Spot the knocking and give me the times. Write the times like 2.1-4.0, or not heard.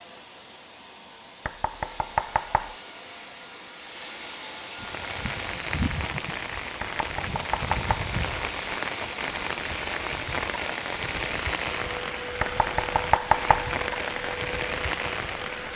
1.4-2.8, 6.8-8.1, 12.4-13.7.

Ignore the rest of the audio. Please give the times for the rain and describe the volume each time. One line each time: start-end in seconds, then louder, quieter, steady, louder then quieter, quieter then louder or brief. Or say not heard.
4.8-15.7 steady.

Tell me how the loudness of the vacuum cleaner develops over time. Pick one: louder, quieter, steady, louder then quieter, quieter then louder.
louder.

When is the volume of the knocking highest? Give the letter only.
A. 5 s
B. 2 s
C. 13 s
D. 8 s
C.